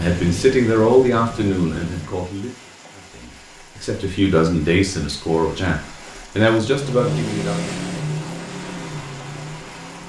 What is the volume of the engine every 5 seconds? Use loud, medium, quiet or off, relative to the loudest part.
medium, loud.